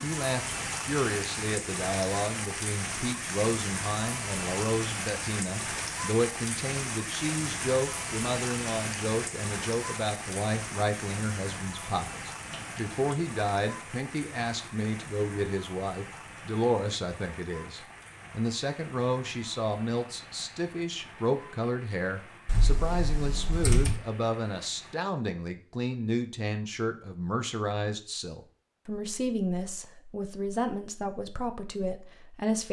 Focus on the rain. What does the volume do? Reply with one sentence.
The loudness of the rain goes down.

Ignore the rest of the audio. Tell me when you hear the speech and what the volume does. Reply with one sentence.
The speech can be heard from 0.0 to 32.6 s, at a steady volume.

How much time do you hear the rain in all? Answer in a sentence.
You can hear the rain for 25 seconds altogether.